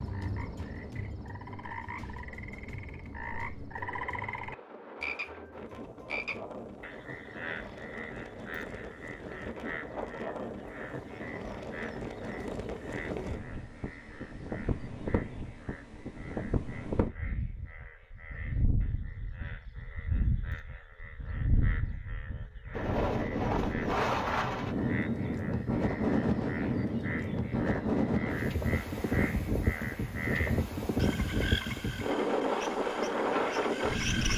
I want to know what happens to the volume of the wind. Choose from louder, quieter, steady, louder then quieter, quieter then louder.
louder.